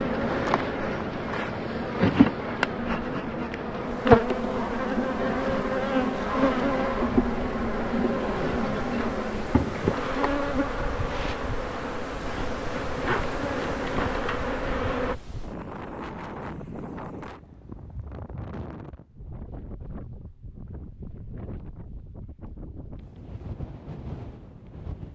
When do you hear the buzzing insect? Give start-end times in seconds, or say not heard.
0.0-15.2.